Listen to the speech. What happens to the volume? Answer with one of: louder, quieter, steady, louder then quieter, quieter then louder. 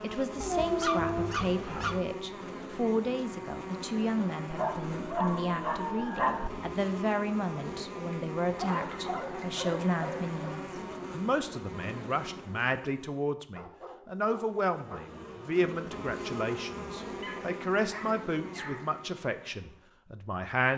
steady.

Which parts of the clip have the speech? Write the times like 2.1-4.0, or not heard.
0.0-20.7.